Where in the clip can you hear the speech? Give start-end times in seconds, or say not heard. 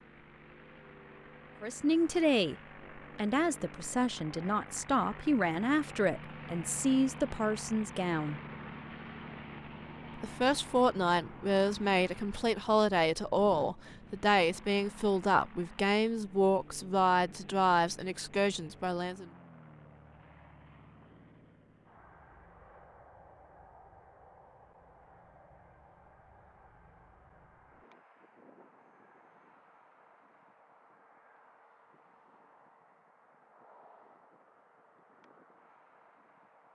1.6-8.4, 10.2-19.2.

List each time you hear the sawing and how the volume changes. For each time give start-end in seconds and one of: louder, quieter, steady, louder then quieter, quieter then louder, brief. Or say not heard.
not heard.